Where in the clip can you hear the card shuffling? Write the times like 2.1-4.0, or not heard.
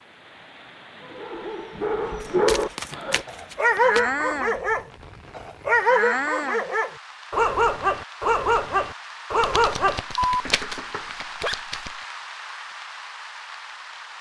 2.2-4.0, 9.4-12.0.